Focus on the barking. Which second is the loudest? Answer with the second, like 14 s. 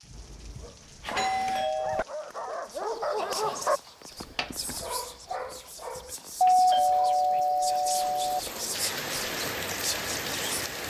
4 s.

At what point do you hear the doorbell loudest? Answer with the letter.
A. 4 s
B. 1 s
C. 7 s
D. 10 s
C.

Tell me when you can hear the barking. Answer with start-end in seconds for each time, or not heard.
0.0-7.2.